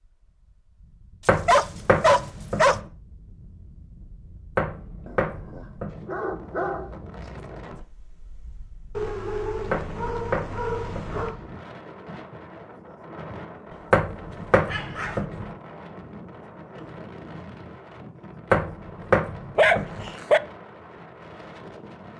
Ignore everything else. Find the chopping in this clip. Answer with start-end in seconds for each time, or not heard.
1.2-2.9, 4.5-6.1, 9.7-11.2, 13.9-15.5, 18.5-20.1.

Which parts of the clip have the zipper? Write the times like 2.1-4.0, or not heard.
not heard.